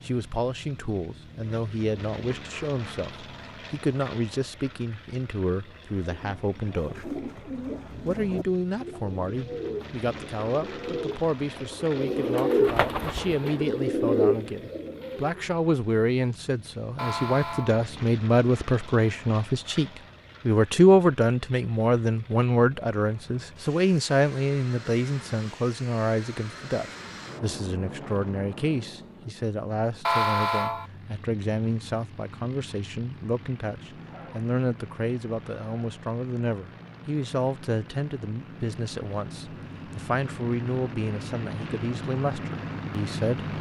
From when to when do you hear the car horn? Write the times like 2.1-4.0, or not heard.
16.9-17.8, 30.1-30.9.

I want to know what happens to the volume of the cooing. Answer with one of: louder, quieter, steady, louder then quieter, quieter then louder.
louder.